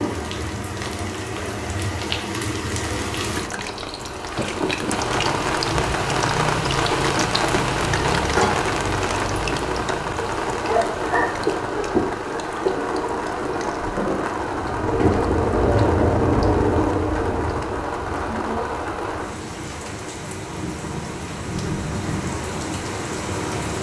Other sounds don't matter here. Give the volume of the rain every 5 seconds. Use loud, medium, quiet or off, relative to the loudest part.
medium, loud, loud, loud, medium.